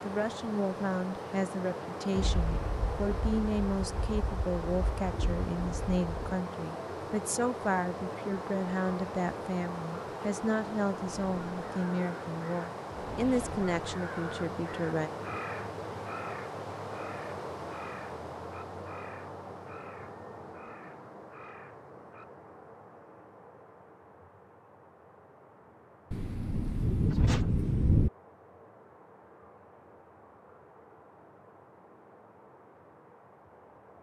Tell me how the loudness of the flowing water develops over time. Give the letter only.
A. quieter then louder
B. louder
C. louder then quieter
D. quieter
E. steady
D.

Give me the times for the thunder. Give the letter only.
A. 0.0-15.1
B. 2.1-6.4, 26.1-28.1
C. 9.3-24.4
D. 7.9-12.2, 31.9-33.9
B.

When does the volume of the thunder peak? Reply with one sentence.
The loudest moment of the thunder is at 28 seconds.